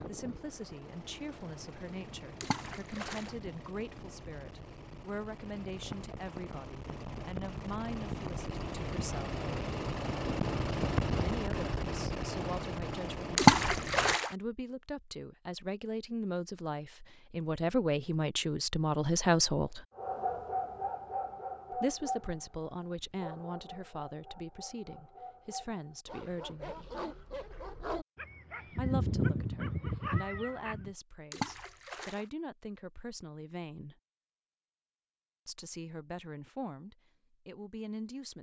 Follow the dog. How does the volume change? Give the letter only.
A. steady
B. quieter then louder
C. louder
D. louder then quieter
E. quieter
B.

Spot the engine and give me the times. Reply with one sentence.
You can hear the engine from 0.0 to 14.2 s.